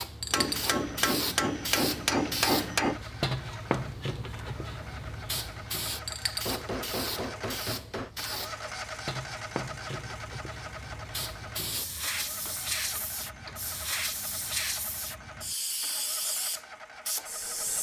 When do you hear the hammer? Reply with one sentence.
You can hear the hammer from 0.3 to 3.0 s, from 6.5 to 8.1 s and from 12.2 to 13.8 s.